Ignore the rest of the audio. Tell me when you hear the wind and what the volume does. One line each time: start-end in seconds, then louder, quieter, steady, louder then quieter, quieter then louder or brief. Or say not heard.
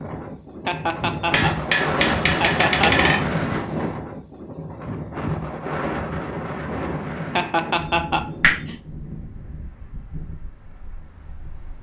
0.0-11.7 quieter.